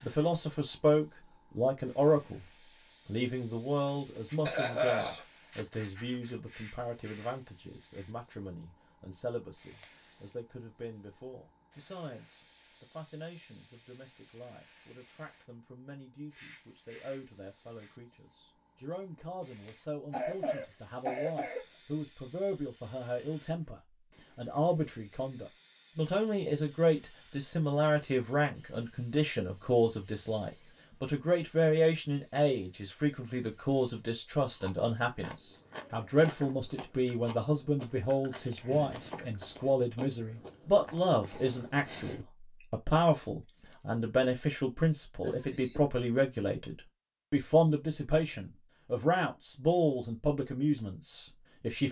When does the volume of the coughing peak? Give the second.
5 s.